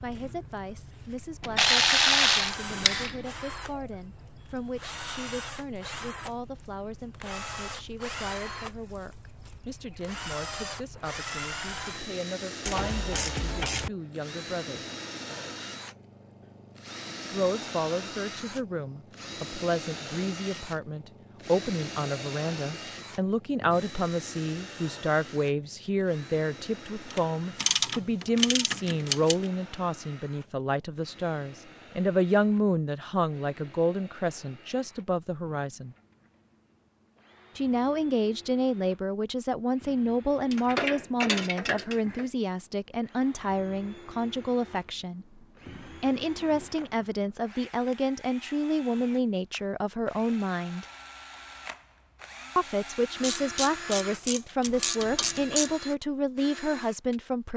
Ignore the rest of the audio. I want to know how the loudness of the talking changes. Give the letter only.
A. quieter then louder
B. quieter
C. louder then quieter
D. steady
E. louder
E.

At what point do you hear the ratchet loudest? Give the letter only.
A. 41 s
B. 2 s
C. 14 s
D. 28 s
B.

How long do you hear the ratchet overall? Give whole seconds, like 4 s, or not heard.
10 s.